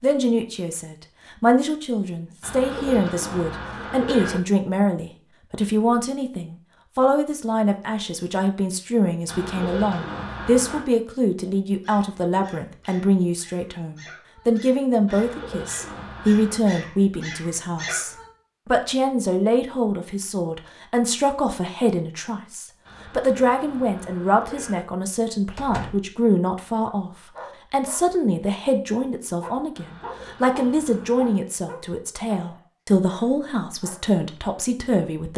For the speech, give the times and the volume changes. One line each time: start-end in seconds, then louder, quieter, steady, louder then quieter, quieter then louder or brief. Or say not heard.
0.0-35.3 steady.